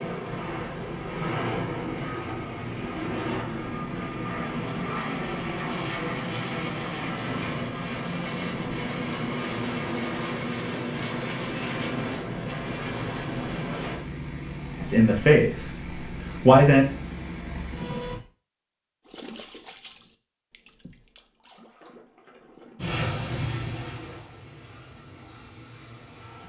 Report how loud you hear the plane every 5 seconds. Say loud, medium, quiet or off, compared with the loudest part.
loud, loud, loud, medium, loud, quiet.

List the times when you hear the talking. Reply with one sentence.
The talking can be heard from 14.8 to 15.7 s and from 16.4 to 16.9 s.